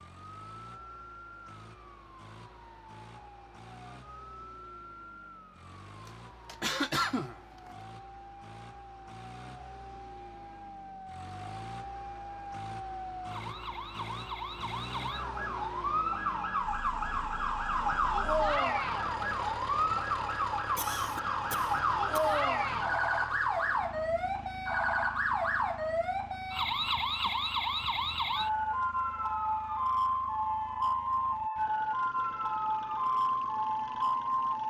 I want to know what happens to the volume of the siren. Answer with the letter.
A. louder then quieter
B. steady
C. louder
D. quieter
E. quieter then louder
C.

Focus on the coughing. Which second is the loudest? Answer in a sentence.
The volume of the coughing peaks at 7 seconds.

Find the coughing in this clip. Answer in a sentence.
The coughing can be heard from 6.0 to 7.8 s and from 20.8 to 22.4 s.